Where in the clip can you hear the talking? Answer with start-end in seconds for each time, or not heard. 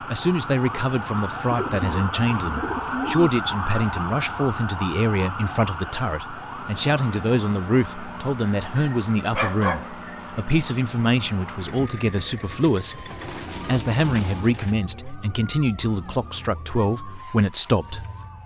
0.0-18.4.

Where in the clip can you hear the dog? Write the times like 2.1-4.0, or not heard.
8.8-10.2.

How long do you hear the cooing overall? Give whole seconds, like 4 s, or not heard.
4 s.